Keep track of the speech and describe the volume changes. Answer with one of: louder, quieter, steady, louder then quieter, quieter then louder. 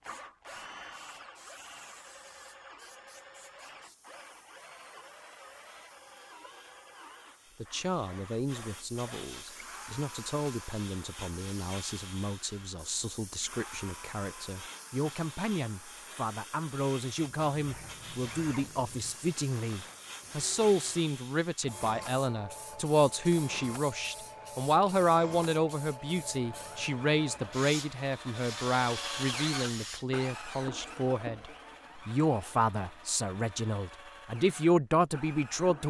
louder.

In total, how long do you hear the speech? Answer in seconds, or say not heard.
28 s.